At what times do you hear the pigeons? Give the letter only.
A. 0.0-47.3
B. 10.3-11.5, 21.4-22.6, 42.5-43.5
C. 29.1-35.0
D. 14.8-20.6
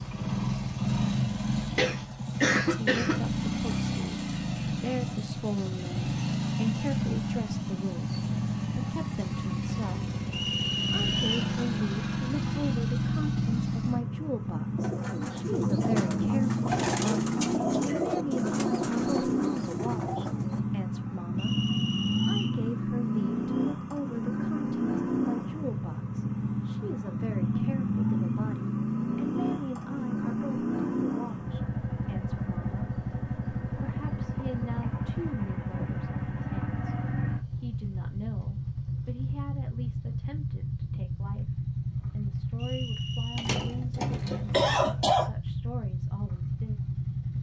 D.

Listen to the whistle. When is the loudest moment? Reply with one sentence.
The volume of the whistle peaks at 11 seconds.